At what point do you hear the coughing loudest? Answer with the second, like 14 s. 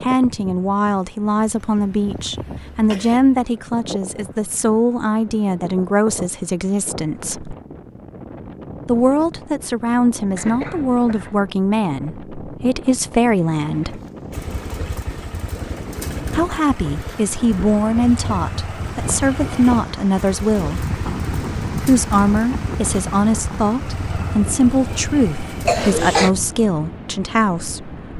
26 s.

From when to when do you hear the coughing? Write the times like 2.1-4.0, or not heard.
1.4-3.4, 10.3-11.4, 25.6-26.3.